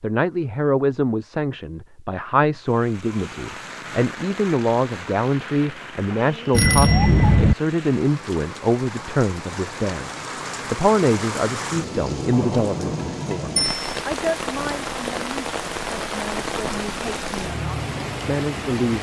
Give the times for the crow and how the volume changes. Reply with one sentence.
You can't hear the crow here.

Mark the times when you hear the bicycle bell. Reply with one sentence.
The bicycle bell can be heard from 6.5 to 7.5 s and from 13.6 to 14.0 s.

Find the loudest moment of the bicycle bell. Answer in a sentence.
The loudest moment of the bicycle bell is at 7 seconds.